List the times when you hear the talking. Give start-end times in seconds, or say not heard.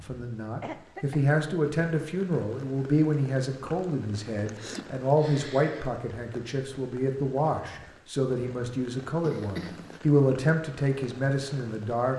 0.0-12.1.